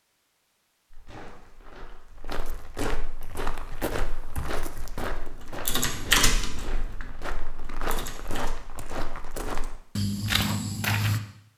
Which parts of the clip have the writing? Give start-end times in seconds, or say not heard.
not heard.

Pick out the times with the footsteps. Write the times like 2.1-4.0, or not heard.
0.9-11.2.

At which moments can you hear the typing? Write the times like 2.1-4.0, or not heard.
3.1-8.6.